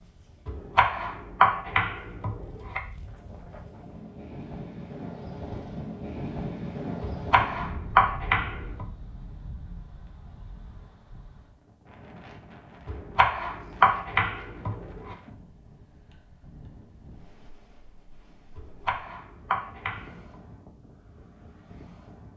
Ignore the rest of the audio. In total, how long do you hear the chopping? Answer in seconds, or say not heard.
8 s.